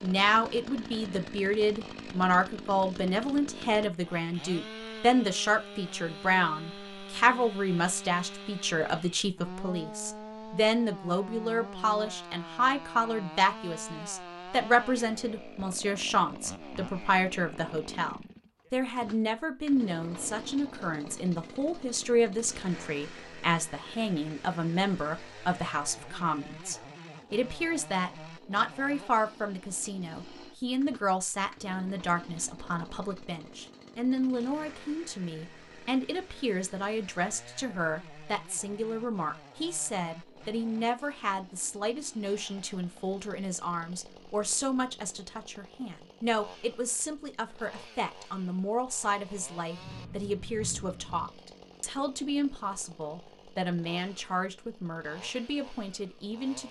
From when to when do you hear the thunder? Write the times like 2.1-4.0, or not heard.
49.8-51.3.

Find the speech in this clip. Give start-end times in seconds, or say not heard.
0.0-56.6.